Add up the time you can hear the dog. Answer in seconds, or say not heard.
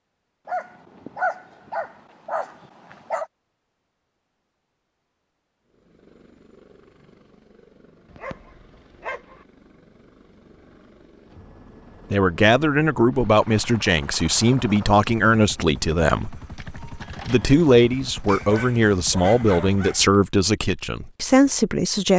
6 s.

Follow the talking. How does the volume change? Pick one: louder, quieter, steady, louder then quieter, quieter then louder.
steady.